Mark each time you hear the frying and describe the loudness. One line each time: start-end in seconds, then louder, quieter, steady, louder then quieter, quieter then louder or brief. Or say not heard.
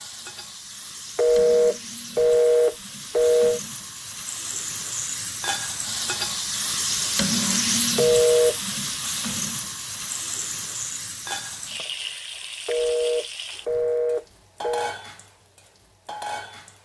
0.0-16.8 louder then quieter.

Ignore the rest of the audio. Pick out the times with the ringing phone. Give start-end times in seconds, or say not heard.
1.1-3.6, 8.0-8.6, 12.7-14.9.